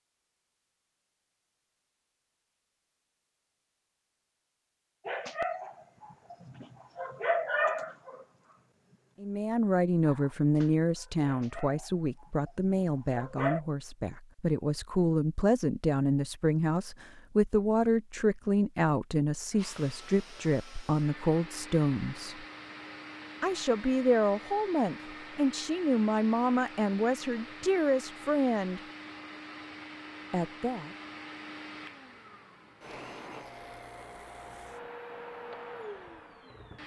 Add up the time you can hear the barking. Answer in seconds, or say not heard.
7 s.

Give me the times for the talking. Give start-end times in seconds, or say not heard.
9.2-22.4, 23.4-28.8, 30.3-30.9.